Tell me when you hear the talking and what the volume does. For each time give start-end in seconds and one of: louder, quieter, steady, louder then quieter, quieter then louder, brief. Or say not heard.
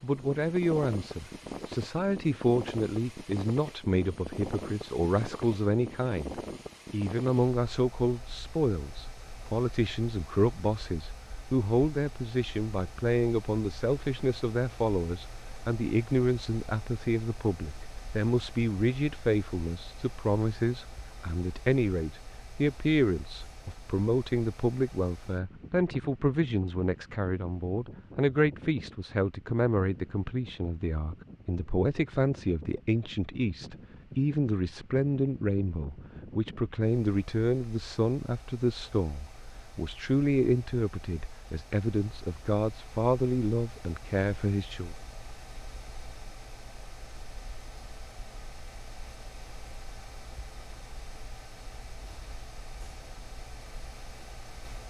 0.0-45.0 steady.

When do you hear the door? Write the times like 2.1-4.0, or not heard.
not heard.